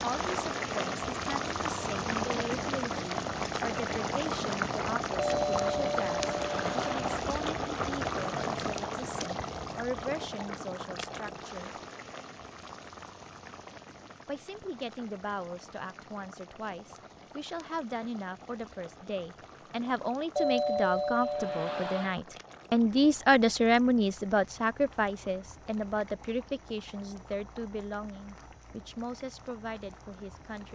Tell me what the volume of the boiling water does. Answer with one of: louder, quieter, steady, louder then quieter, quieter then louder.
quieter.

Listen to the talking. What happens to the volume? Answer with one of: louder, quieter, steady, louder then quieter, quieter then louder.
louder then quieter.